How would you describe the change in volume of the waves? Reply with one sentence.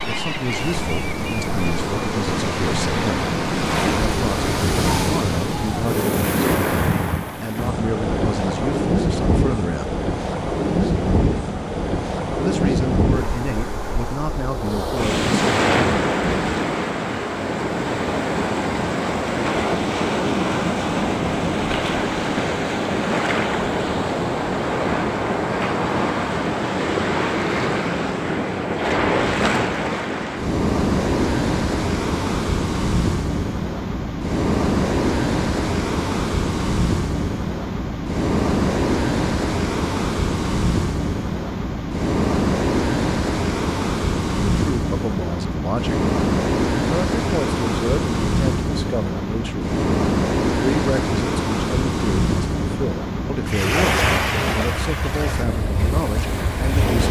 The volume of the waves stays about the same.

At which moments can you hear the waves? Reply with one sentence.
You can hear the waves from 0.0 to 57.0 s.